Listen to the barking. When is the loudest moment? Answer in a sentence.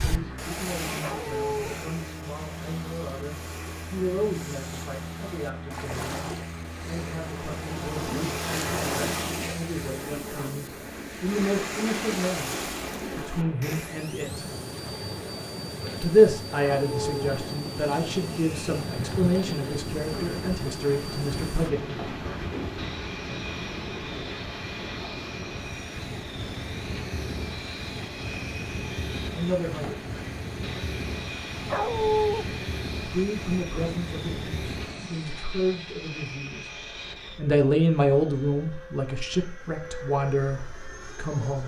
The loudest moment of the barking is at 32 seconds.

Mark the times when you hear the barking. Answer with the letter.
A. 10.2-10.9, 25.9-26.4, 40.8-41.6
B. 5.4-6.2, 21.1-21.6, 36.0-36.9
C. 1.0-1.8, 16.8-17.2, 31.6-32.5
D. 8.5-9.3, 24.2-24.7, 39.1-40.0
C.